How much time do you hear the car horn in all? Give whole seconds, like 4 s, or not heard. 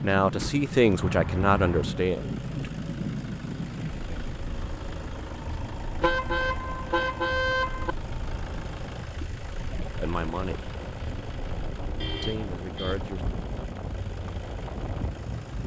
4 s.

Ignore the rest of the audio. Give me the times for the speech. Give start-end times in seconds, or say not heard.
0.0-2.7, 9.9-10.7, 12.2-13.2.